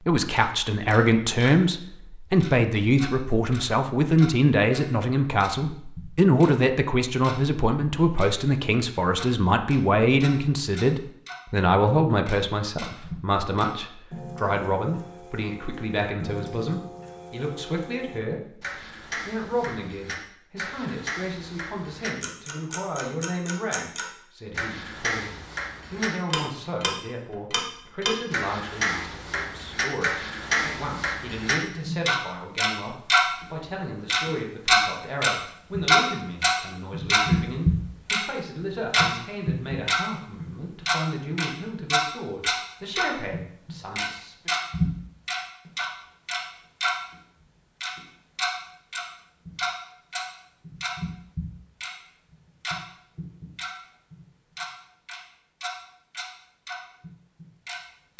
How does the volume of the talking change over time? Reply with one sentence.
The loudness of the talking goes down.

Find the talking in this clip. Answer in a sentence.
You can hear the talking from 0.1 to 44.5 s.